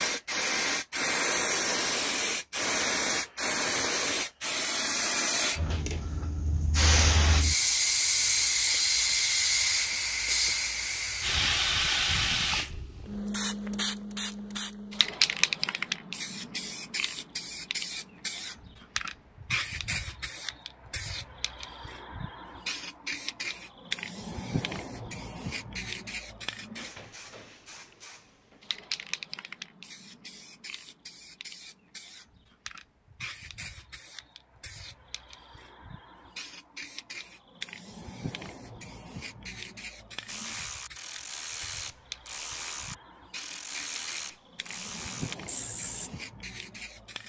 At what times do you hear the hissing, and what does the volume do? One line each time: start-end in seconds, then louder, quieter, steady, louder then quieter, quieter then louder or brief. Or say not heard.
0.0-47.2 quieter.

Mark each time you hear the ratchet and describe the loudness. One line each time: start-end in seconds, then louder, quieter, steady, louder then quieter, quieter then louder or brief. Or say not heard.
40.2-46.1 steady.